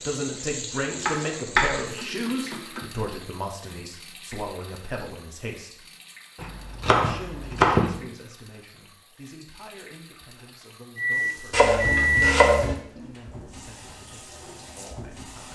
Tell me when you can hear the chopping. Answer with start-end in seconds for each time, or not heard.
1.1-2.8, 6.4-8.0, 11.5-12.8.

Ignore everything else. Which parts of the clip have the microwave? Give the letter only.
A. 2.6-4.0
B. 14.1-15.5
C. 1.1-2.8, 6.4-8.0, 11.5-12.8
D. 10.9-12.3
D.